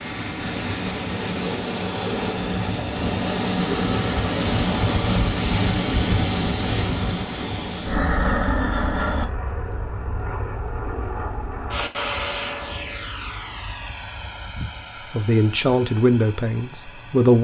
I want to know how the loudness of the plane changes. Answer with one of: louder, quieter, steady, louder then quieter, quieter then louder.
quieter.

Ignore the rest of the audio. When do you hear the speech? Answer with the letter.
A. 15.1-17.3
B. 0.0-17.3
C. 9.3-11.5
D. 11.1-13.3
A.